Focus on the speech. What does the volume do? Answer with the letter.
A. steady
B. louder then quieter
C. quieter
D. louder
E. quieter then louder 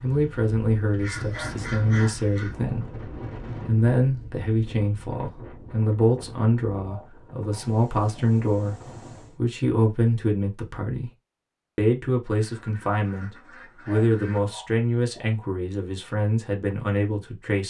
A.